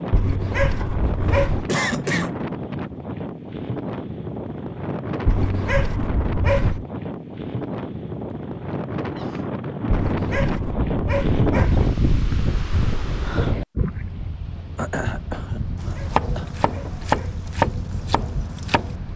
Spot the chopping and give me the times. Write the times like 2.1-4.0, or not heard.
15.8-18.9.